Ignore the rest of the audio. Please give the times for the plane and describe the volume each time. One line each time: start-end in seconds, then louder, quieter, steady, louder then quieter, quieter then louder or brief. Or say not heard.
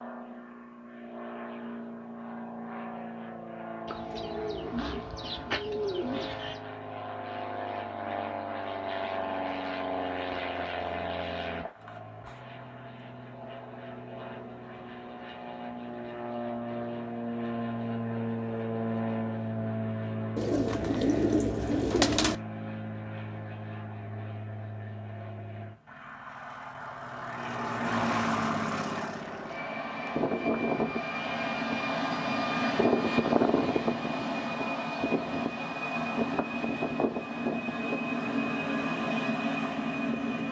0.0-40.4 louder.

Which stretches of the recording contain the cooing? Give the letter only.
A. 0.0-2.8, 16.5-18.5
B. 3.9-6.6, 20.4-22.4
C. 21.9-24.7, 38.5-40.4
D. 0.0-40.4
B.